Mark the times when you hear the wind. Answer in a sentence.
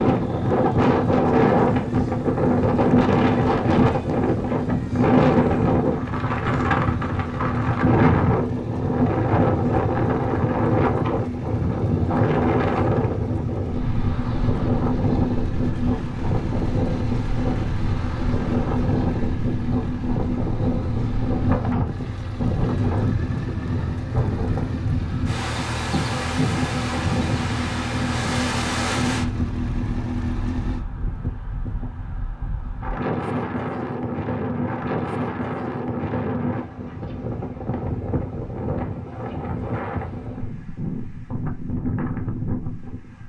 The wind can be heard from 0.0 to 43.2 s.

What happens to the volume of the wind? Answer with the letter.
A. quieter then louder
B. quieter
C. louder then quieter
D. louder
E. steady
B.